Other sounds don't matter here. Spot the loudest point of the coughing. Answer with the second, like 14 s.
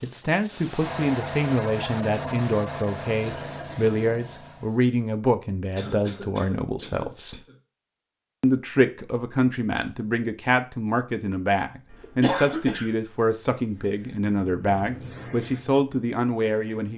12 s.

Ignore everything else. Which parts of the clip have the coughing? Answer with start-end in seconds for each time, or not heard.
3.2-4.0, 5.8-7.5, 11.9-12.9.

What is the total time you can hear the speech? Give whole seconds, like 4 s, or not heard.
16 s.